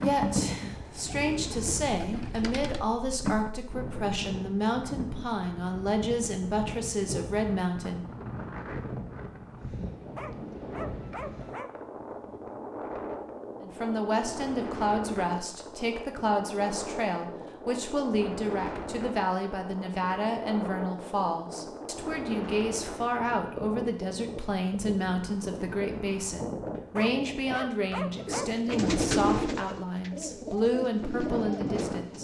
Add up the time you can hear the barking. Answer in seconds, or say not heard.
3 s.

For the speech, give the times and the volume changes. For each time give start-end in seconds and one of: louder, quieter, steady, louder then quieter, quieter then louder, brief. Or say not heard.
0.0-8.1 steady
13.6-32.1 steady.